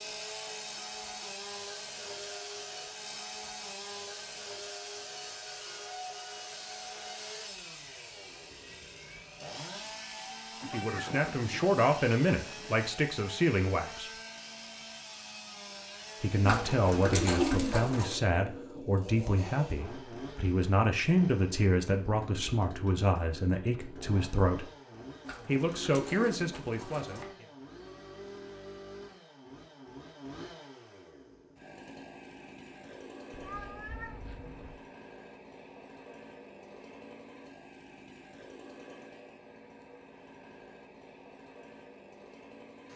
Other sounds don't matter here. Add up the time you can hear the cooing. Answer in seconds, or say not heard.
4 s.